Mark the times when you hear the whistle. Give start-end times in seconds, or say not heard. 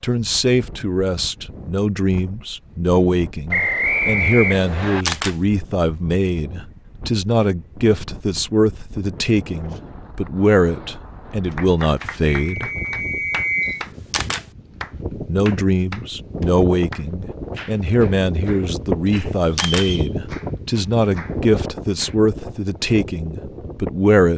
3.5-5.0, 12.5-13.8, 19.5-20.1.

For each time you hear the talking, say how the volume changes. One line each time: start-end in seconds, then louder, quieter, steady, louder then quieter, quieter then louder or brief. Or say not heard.
0.0-12.7 steady
15.2-24.3 steady.